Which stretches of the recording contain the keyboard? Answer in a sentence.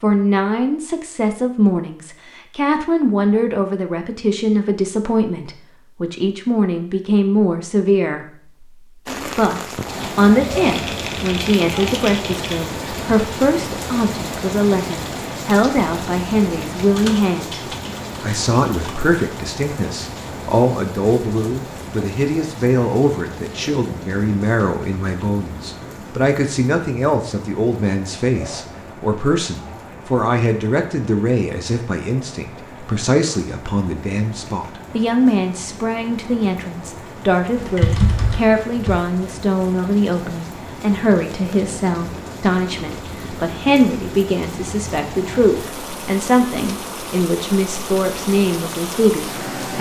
The keyboard can be heard from 10.5 to 12.6 s, from 16.9 to 18.9 s and from 37.5 to 39.0 s.